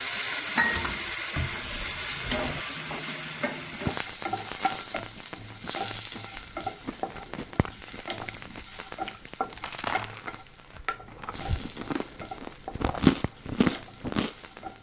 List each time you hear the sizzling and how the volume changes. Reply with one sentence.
The sizzling can be heard from 0.0 to 14.7 s, getting quieter.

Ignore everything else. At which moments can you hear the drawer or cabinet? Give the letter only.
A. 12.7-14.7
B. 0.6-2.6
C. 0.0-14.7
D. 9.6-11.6
B.